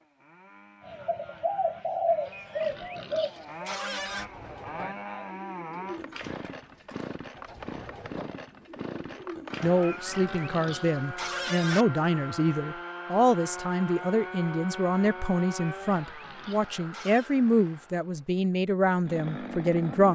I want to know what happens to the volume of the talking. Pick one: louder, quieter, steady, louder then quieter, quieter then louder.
steady.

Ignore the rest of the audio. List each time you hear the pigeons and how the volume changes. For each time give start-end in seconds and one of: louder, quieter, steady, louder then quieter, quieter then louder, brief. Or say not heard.
0.8-10.6 quieter.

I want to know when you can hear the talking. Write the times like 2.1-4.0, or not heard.
9.6-20.1.